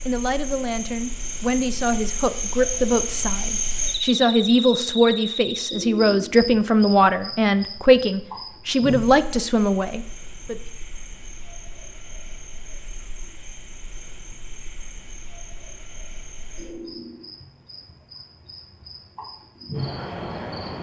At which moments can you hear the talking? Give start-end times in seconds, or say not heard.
0.1-10.6.